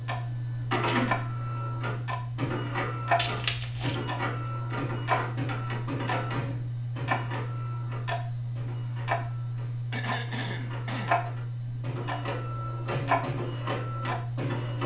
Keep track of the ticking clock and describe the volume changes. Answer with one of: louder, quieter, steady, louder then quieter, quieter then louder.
steady.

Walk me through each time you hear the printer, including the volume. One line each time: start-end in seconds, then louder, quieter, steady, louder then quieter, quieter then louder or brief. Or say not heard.
0.0-14.8 quieter then louder.